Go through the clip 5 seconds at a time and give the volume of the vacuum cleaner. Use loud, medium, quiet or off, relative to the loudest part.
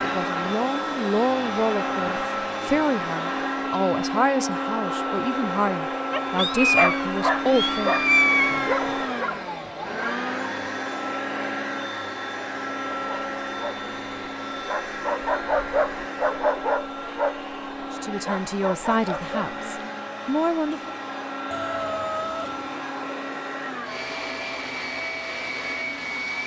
loud, loud, loud, medium, medium, loud.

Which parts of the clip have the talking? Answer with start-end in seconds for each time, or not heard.
0.0-8.0, 17.9-20.9.